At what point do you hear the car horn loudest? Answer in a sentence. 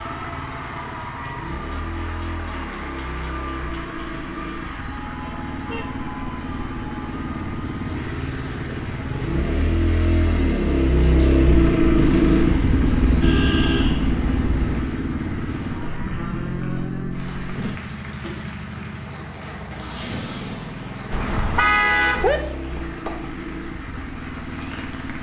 The volume of the car horn peaks at 22 seconds.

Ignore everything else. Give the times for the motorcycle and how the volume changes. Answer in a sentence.
The motorcycle can be heard from 0.0 to 25.1 s, getting louder then quieter.